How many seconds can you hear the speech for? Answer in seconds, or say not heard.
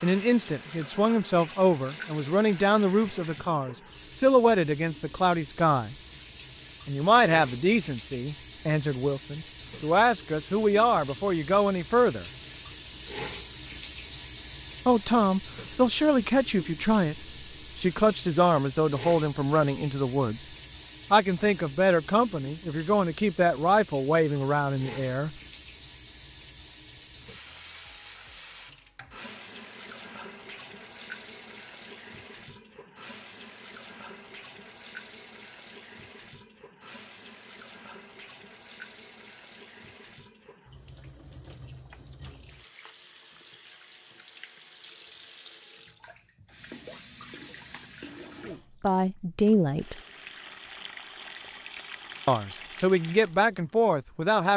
25 s.